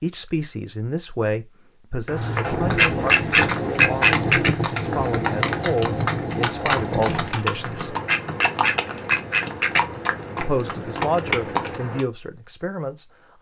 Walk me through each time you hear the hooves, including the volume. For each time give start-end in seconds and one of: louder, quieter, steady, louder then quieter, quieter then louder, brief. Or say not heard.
2.0-12.1 steady.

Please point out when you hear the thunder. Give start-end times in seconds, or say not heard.
2.5-7.3.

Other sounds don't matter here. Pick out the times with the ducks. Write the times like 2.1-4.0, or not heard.
2.2-4.5, 7.5-9.8.